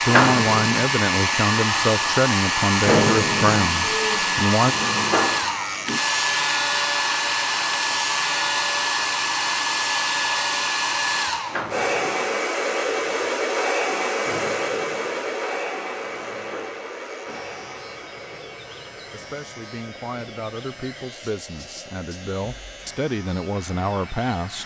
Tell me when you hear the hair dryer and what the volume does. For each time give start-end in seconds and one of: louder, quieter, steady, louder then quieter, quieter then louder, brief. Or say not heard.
0.0-24.6 quieter.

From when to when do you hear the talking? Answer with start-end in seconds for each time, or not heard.
0.1-4.8, 19.1-24.6.